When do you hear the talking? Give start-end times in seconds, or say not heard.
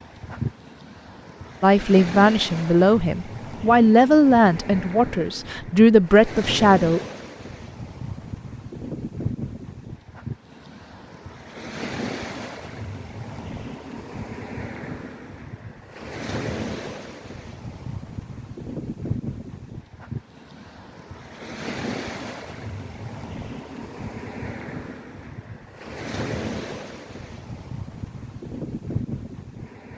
1.6-7.0.